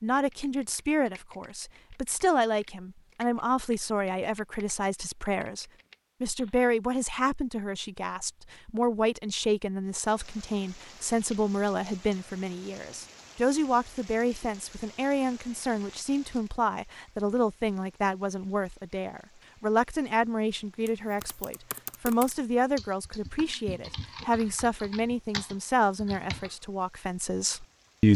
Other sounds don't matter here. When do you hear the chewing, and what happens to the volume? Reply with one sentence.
You can't hear the chewing here.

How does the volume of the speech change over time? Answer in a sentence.
The volume of the speech stays about the same.